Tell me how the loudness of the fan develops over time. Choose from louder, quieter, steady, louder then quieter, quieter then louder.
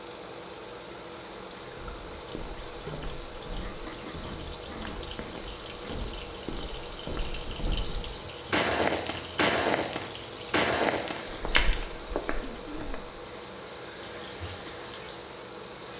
steady.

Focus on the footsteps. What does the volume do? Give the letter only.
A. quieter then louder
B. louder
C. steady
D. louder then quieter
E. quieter
B.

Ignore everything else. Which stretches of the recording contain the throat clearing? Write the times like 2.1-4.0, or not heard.
3.5-5.0, 12.4-13.1.